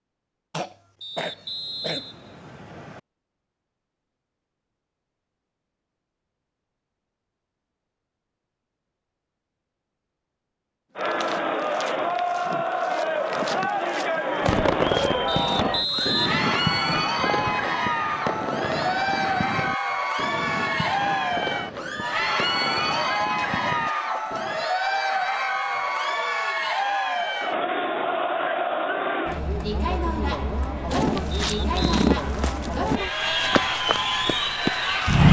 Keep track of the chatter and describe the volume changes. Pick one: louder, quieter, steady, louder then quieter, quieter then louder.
steady.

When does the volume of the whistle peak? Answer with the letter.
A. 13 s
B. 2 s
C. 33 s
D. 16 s
D.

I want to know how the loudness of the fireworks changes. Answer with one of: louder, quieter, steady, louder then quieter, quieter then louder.
quieter.